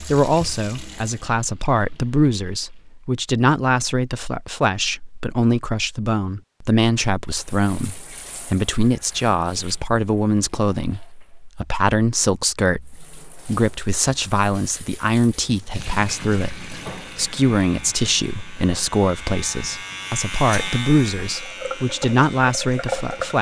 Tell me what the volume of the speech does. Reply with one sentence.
The loudness of the speech stays about the same.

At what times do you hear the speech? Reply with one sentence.
The speech can be heard from 0.0 to 23.3 s.